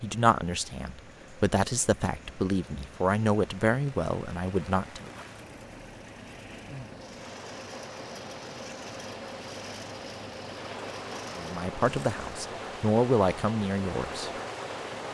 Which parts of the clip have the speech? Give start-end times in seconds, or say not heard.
0.0-5.1, 11.3-14.3.